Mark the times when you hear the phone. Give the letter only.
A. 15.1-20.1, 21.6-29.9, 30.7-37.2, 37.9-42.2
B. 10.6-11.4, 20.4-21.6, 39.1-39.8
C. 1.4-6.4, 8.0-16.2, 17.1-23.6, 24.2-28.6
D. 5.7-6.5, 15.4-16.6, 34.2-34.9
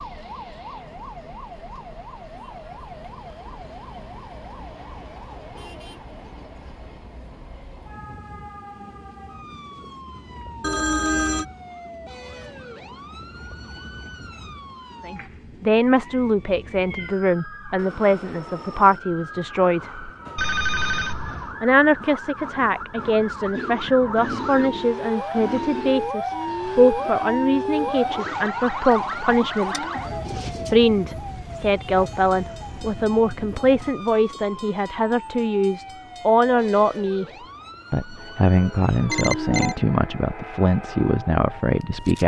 B.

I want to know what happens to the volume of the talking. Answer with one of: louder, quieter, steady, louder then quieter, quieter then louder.
steady.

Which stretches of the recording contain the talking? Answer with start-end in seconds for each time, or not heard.
15.1-20.1, 21.6-29.9, 30.7-37.2, 37.9-42.2.